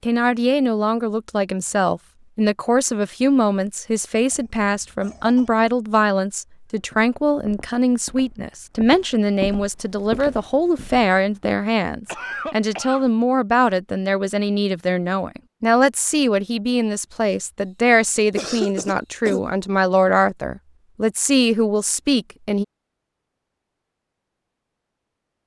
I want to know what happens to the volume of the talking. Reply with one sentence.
The loudness of the talking stays about the same.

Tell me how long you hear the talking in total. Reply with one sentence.
You can hear the talking for 23 seconds altogether.